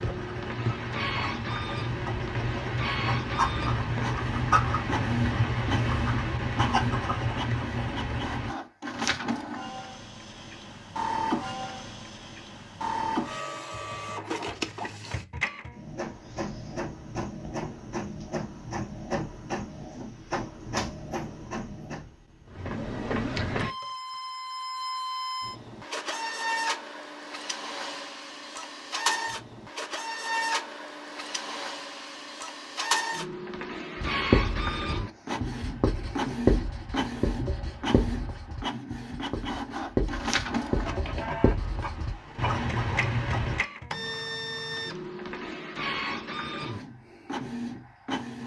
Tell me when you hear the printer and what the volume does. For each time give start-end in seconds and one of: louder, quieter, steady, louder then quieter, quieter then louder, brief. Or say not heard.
0.0-48.4 steady.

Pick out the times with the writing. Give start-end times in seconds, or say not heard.
0.0-8.5, 34.0-43.6.